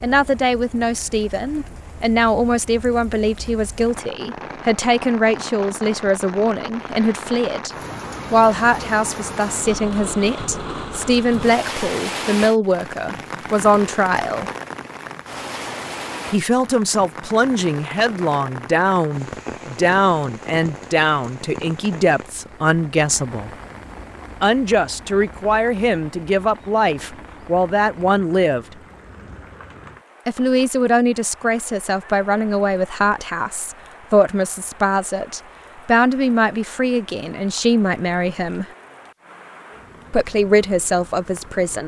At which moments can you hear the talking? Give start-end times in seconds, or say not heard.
0.0-7.7, 8.3-14.5, 16.3-23.5, 24.4-28.6, 30.2-38.6, 40.1-41.8.